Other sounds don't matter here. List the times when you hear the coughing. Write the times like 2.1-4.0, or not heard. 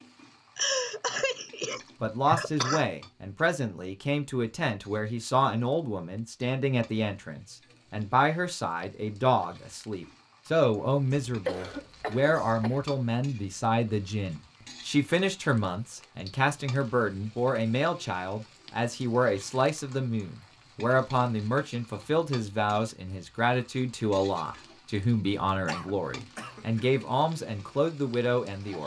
0.6-2.9, 11.1-12.8, 25.6-26.9.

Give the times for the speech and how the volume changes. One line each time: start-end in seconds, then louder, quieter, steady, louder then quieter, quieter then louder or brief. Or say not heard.
2.0-28.8 steady.